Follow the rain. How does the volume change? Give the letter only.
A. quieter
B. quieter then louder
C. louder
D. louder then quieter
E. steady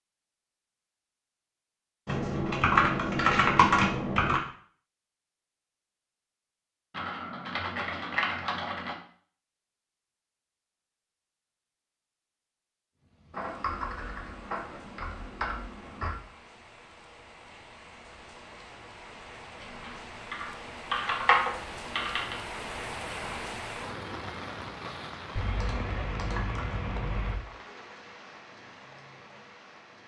D.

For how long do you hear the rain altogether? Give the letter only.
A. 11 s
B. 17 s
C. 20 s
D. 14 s
B.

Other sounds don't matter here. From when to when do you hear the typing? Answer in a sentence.
You can hear the typing from 2.0 to 4.4 s, from 6.9 to 8.9 s, from 13.3 to 16.1 s, from 19.6 to 22.4 s and from 25.4 to 27.4 s.